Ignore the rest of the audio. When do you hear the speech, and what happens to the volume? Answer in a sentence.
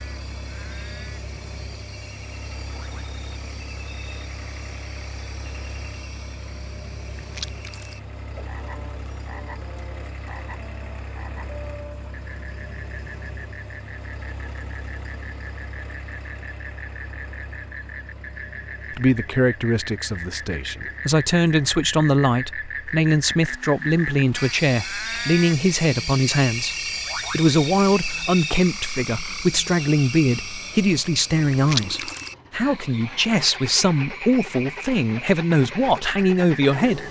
The speech can be heard from 18.9 to 37.0 s, at a steady volume.